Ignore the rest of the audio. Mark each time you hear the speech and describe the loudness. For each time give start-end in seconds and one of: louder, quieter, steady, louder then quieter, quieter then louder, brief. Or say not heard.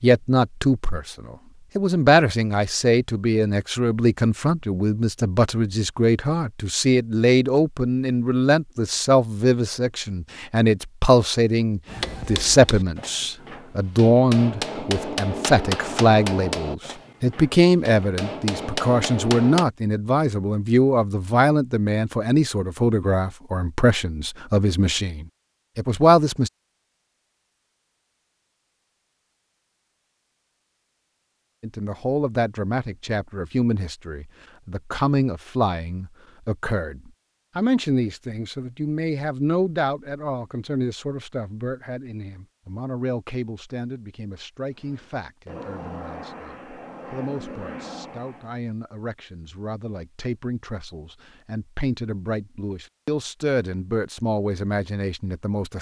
0.0-26.5 steady
31.6-55.7 quieter then louder.